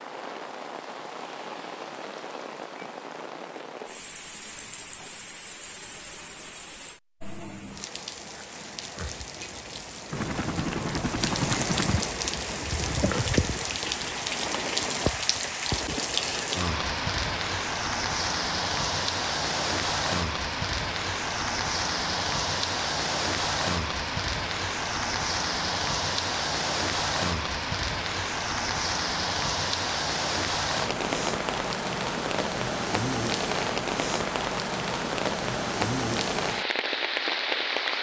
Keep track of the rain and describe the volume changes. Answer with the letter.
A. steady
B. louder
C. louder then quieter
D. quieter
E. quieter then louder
B.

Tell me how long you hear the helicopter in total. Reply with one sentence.
You can hear the helicopter for 2 seconds altogether.